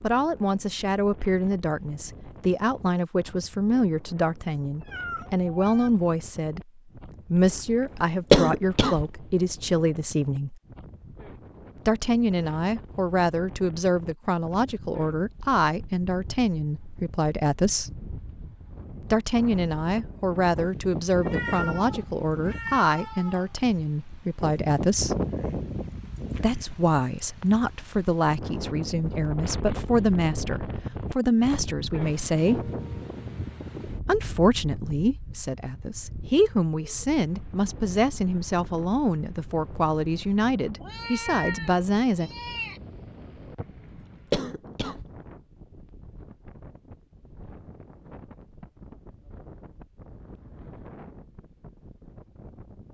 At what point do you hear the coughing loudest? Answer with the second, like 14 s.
8 s.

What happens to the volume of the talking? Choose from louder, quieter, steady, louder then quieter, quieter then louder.
steady.